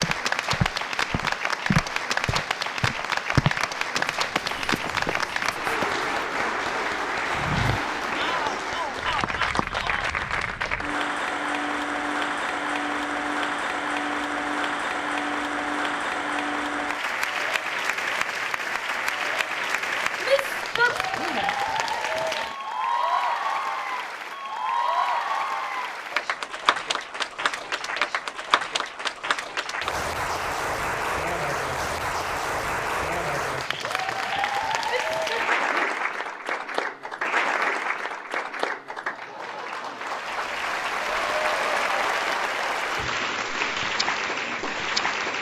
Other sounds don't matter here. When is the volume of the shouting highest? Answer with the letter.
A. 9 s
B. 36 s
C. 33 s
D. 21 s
D.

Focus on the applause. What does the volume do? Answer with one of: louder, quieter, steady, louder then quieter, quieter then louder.
steady.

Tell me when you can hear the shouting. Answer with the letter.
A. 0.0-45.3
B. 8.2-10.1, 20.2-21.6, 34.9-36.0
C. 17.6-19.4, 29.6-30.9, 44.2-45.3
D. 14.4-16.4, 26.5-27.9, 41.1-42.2
B.